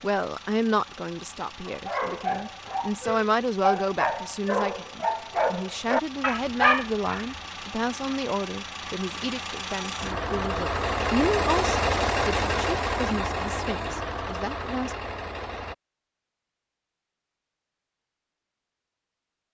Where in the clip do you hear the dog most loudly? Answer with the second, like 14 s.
7 s.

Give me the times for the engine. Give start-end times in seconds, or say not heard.
0.0-15.8.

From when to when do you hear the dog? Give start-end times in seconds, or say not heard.
1.6-7.2.